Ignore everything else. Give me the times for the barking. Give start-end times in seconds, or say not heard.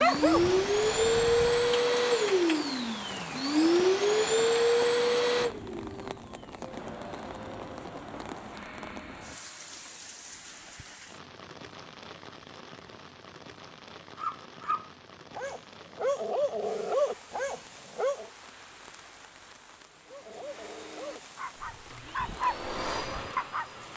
0.0-1.8, 14.2-18.3, 20.1-23.7.